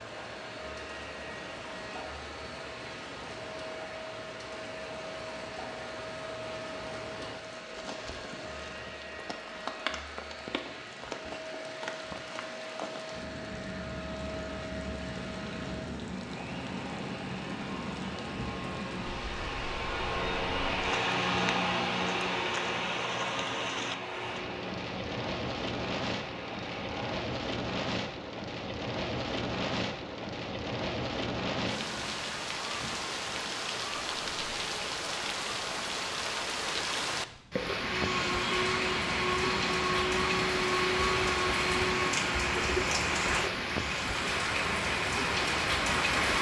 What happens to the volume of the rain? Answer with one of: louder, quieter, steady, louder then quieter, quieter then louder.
louder.